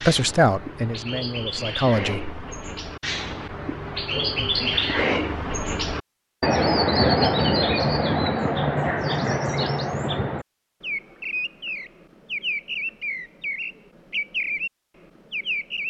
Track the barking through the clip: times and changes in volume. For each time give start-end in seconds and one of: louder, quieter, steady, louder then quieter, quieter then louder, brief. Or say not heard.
not heard.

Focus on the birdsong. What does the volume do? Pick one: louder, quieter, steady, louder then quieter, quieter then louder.
louder then quieter.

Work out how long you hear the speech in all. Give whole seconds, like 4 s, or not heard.
2 s.